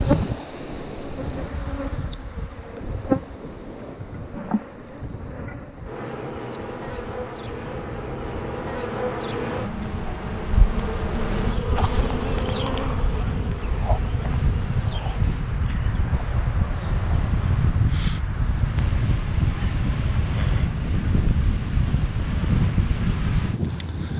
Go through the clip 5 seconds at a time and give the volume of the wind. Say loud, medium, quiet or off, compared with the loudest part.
medium, quiet, medium, loud, loud.